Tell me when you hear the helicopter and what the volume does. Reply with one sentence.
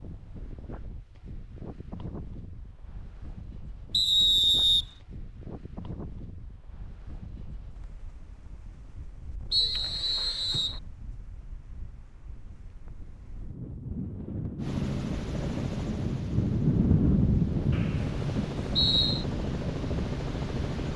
You can hear the helicopter from 14.6 to 20.9 s, getting quieter then louder.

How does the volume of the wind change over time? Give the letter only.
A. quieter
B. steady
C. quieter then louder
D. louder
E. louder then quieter
C.